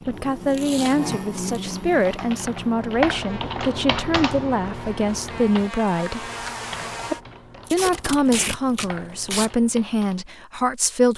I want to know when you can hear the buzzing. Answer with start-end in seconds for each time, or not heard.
0.0-7.2.